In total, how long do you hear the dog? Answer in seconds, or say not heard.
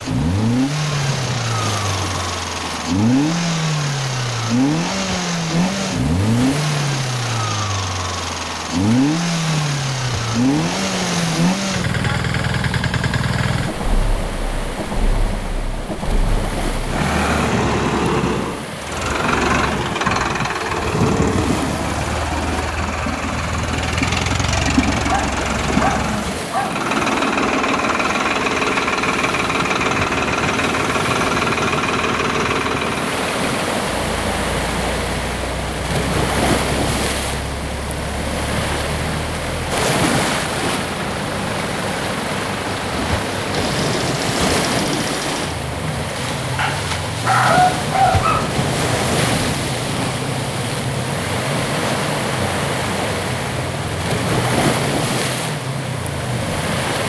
4 s.